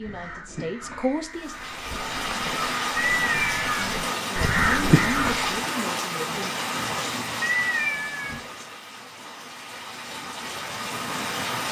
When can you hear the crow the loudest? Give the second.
5 s.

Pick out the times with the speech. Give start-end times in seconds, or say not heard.
0.0-1.6, 4.2-6.5.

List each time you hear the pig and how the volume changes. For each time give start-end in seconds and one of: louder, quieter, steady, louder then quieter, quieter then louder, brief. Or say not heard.
not heard.